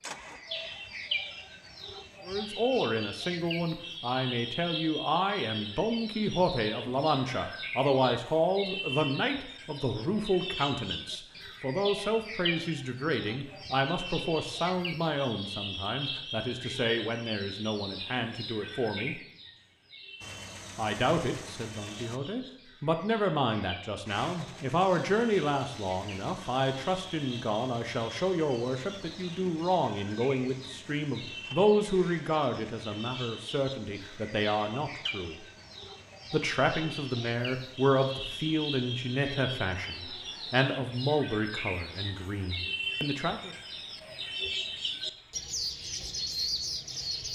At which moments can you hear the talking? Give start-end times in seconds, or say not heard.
2.2-19.1, 20.8-35.4, 36.3-43.5.